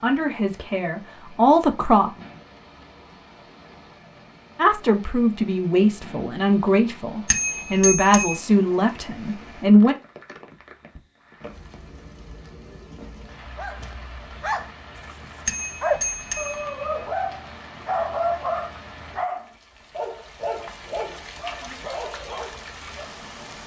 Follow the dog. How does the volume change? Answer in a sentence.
The loudness of the dog goes up, then down.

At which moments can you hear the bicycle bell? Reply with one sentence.
You can hear the bicycle bell from 7.2 to 8.4 s and from 15.4 to 16.9 s.